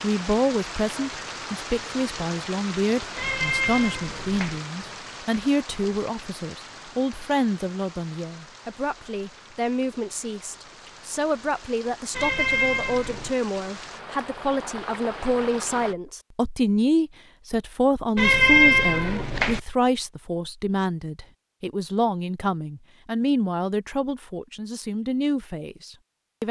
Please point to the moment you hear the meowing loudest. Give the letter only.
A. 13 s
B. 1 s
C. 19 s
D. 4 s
C.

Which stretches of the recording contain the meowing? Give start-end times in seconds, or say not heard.
3.1-4.6, 12.1-13.3, 18.1-19.6.